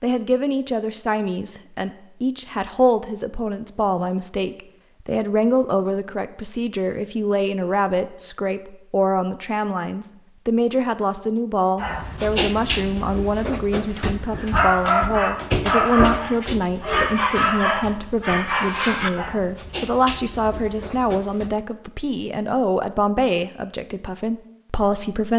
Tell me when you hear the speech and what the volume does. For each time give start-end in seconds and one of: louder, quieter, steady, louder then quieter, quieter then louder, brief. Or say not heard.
0.0-25.3 steady.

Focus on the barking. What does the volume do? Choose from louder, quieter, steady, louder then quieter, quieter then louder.
louder then quieter.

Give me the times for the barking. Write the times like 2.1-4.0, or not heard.
11.8-21.6.